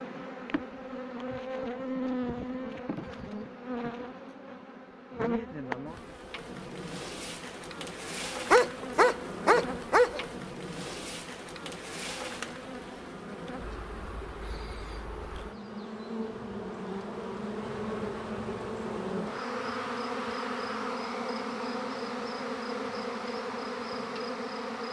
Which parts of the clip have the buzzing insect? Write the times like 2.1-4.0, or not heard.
0.0-24.8.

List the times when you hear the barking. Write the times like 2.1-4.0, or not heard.
8.5-10.2.